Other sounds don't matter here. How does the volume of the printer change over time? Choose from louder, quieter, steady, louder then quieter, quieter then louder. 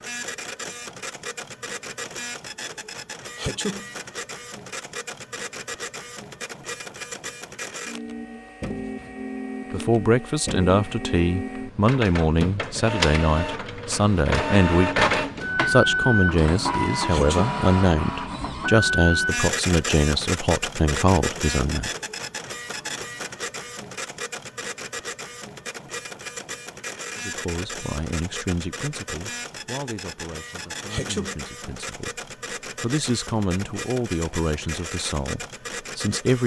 louder then quieter.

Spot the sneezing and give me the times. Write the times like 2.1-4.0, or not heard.
3.4-3.9, 17.1-17.6, 30.9-31.4.